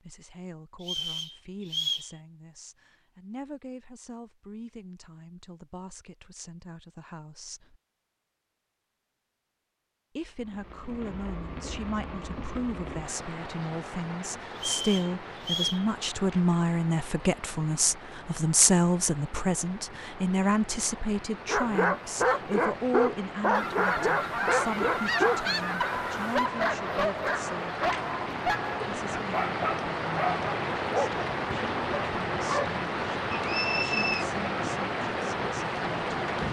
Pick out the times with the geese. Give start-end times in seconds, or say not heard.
23.5-26.4.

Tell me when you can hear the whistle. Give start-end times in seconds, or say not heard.
0.8-2.1, 14.6-15.8, 33.3-34.2.